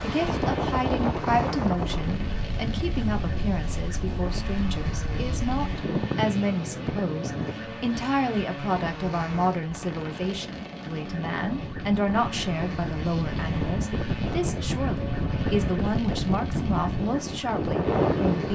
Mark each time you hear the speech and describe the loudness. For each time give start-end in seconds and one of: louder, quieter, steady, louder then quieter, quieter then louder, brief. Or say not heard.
0.0-18.5 steady.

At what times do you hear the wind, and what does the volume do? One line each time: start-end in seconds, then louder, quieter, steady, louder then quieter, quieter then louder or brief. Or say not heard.
0.0-18.5 quieter then louder.